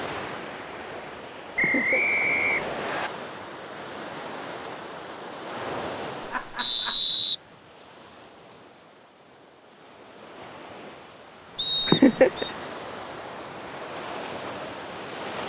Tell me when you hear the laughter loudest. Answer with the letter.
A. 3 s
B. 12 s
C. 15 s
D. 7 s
B.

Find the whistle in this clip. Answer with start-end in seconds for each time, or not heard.
1.6-3.1, 6.5-7.3, 11.6-12.6.